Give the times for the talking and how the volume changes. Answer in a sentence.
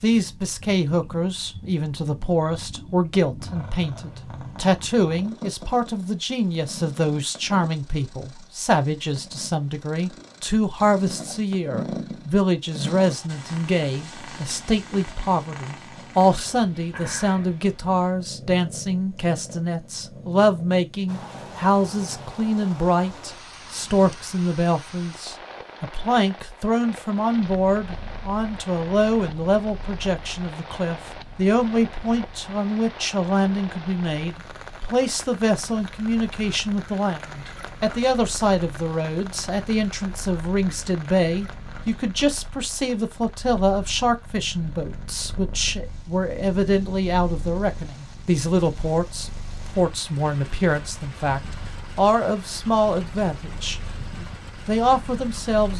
You can hear the talking from 0.0 to 55.7 s, at a steady volume.